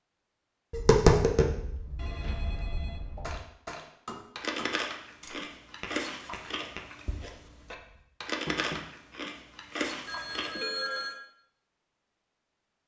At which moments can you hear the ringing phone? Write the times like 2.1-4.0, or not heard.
1.9-3.4, 10.1-11.2.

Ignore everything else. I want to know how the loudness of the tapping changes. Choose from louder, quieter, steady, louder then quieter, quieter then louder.
quieter.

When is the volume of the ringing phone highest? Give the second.
11 s.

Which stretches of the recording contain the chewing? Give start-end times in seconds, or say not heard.
4.3-10.6.